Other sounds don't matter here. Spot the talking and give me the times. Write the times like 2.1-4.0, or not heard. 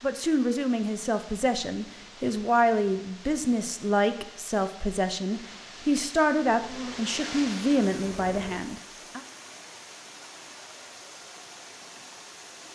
0.0-9.2.